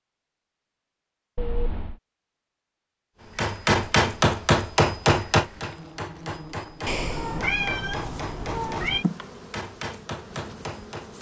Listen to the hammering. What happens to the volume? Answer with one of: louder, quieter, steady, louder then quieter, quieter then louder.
quieter.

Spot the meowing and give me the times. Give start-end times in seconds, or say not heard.
1.4-1.9, 6.8-9.1.